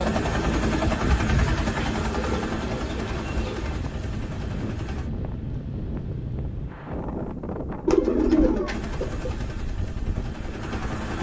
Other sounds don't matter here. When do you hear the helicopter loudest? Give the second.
1 s.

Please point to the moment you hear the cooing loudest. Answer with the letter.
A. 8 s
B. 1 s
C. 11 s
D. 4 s
A.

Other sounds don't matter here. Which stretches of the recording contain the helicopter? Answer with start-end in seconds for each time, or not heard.
0.0-5.1, 8.7-11.1.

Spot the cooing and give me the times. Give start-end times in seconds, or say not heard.
1.8-3.8, 7.8-9.3.